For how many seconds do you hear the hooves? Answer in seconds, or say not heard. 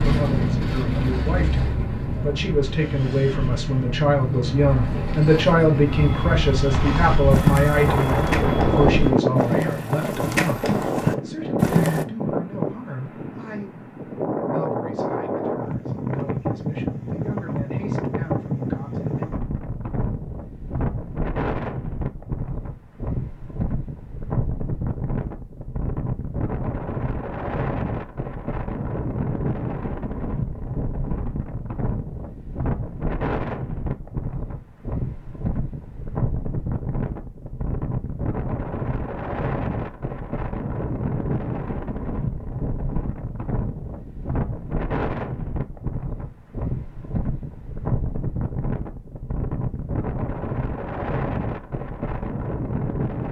5 s.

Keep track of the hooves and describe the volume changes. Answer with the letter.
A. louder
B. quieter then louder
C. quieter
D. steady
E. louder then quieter
B.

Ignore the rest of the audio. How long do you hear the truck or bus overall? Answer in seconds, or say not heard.
9 s.